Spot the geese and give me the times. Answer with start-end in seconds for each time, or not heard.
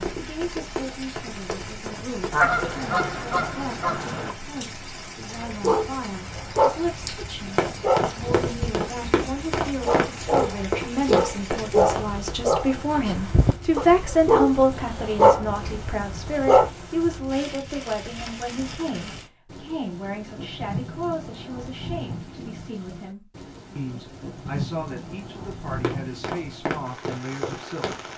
2.3-4.3.